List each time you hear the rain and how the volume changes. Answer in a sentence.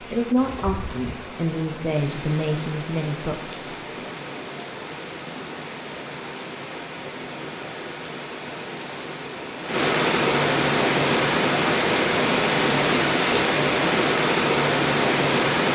The rain can be heard from 0.0 to 15.7 s, getting louder.